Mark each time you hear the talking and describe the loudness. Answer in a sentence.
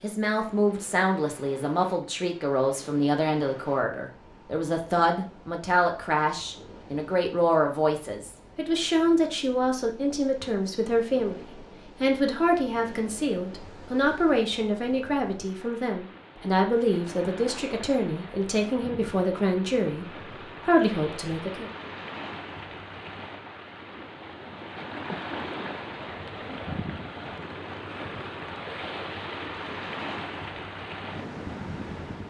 You can hear the talking from 0.0 to 21.7 s, at a steady volume.